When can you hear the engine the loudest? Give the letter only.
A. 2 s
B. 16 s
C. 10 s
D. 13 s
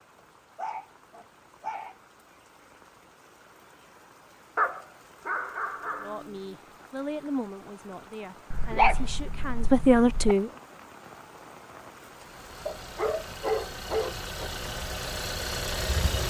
B.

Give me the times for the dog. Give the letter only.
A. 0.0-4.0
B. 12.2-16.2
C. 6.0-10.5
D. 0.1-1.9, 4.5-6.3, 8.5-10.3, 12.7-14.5
D.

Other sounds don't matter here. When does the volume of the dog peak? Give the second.
9 s.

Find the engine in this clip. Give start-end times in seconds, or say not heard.
12.2-16.2.